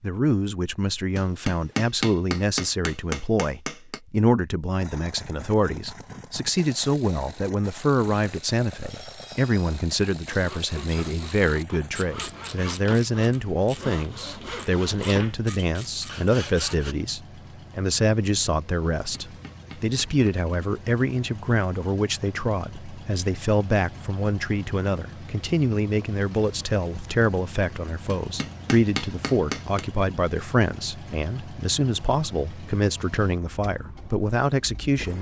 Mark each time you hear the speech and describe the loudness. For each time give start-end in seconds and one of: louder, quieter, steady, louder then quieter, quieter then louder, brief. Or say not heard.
0.0-35.1 steady.